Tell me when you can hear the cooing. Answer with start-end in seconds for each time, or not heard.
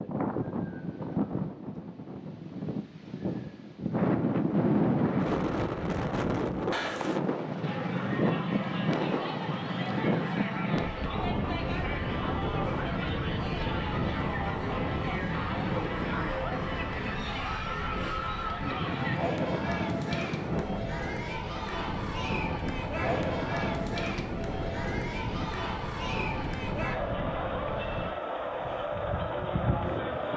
not heard.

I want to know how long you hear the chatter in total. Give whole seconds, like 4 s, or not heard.
23 s.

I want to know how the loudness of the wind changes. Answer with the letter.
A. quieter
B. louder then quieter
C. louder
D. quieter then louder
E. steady
A.